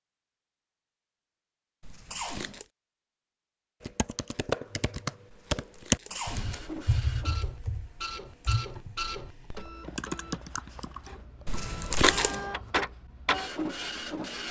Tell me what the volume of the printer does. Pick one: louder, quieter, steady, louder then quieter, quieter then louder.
quieter then louder.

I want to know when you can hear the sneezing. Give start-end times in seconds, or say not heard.
2.1-2.6, 6.1-6.6, 12.1-12.6.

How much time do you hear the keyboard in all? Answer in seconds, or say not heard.
7 s.